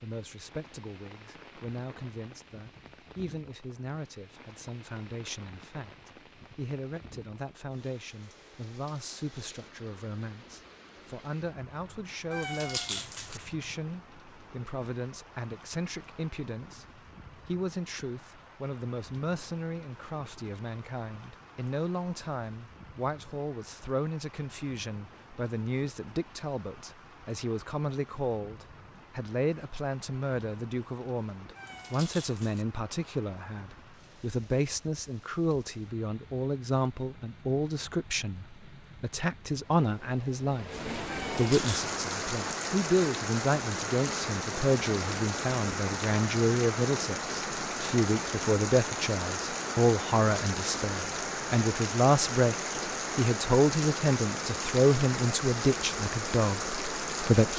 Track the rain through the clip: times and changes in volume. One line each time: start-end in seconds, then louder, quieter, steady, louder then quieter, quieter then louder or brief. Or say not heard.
0.0-57.5 louder.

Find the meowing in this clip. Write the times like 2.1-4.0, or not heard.
12.3-13.4, 31.6-32.6, 41.0-41.8.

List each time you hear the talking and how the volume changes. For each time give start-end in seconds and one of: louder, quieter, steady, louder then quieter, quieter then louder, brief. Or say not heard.
0.0-52.5 louder
53.1-57.5 quieter.